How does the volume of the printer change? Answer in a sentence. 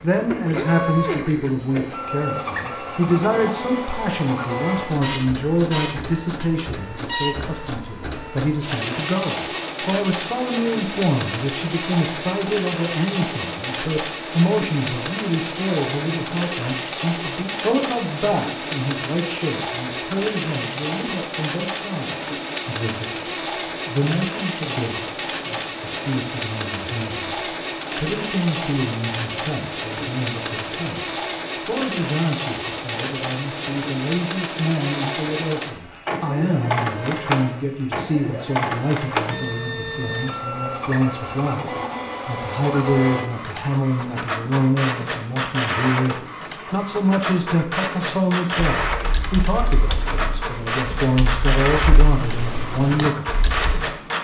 The volume of the printer stays about the same.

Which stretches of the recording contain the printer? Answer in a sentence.
The printer can be heard from 0.0 to 54.1 s.